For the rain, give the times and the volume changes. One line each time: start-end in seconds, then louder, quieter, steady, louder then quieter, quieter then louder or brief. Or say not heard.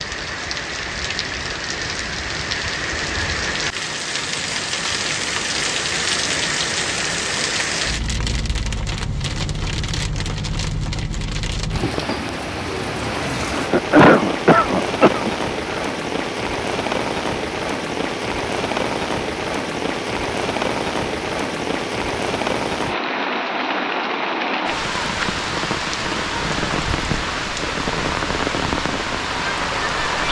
0.0-30.2 steady.